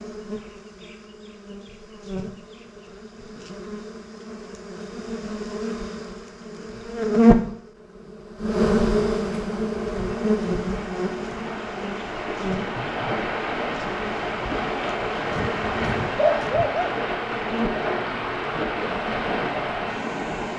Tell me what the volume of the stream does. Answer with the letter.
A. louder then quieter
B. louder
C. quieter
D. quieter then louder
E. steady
B.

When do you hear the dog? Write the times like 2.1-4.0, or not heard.
15.3-16.9.